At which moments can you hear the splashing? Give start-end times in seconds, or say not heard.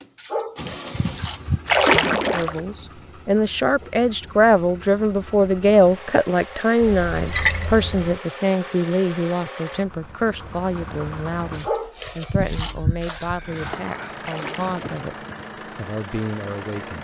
1.6-2.6, 6.8-8.2, 14.2-15.1.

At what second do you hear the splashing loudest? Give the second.
2 s.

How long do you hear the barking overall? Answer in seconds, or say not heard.
4 s.